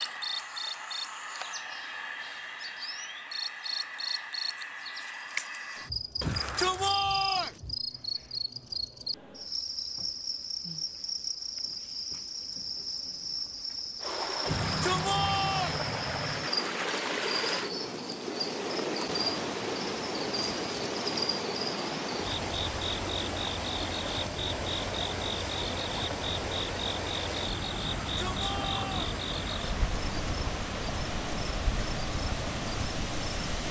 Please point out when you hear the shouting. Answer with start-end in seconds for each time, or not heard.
6.2-7.6, 14.4-15.8, 28.0-29.1.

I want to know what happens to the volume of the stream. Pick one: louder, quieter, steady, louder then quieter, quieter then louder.
steady.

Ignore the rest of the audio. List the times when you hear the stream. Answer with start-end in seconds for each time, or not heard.
14.0-33.6.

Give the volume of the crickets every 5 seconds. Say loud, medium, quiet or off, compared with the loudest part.
loud, loud, loud, loud, loud, loud, medium.